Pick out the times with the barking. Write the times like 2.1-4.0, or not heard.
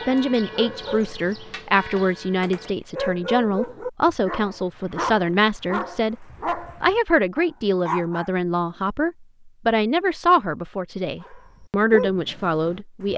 0.0-8.3, 11.2-13.1.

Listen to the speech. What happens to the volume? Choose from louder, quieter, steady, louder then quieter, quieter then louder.
steady.